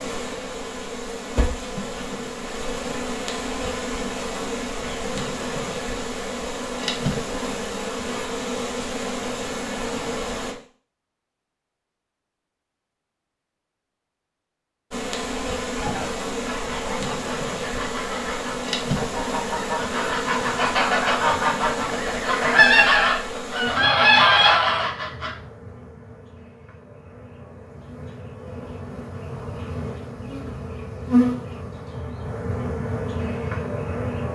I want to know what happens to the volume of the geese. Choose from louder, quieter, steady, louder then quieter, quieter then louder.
louder.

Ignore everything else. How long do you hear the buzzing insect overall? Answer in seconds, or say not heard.
30 s.